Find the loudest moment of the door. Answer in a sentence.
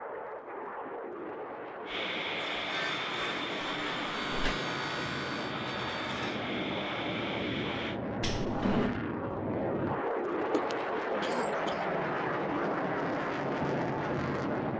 The volume of the door peaks at 9 seconds.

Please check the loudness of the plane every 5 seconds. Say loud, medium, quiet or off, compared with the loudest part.
medium, loud, loud.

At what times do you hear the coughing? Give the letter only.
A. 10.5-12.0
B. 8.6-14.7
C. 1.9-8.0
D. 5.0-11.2
A.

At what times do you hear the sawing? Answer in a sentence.
You can hear the sawing from 1.9 to 8.0 s.